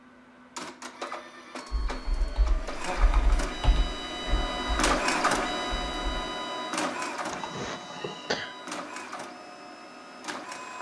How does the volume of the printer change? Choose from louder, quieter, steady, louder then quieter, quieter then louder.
louder then quieter.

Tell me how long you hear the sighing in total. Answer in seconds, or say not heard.
2 s.